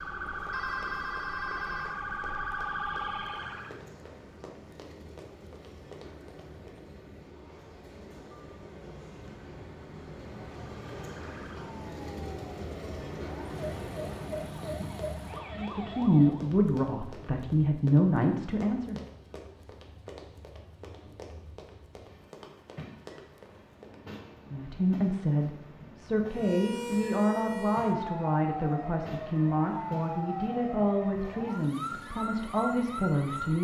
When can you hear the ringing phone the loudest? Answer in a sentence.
The volume of the ringing phone peaks at 1 second.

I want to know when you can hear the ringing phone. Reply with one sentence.
The ringing phone can be heard from 0.5 to 2.0 s.